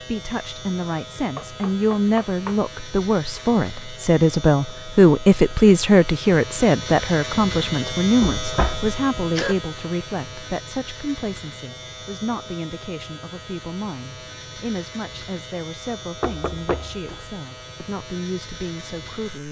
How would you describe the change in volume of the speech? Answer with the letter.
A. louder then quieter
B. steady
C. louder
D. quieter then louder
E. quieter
A.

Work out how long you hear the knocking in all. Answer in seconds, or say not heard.
4 s.